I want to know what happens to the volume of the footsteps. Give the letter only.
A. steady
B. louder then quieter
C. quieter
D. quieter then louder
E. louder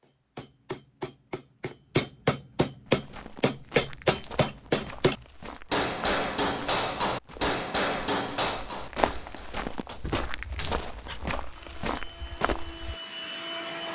E.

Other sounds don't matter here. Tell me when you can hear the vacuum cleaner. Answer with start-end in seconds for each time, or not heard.
11.5-13.8.